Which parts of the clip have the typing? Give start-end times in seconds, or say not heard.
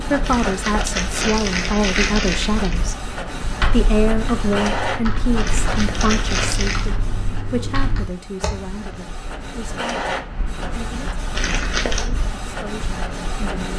3.5-9.0.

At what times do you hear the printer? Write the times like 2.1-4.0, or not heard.
0.0-13.7.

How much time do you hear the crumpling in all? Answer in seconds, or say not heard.
5 s.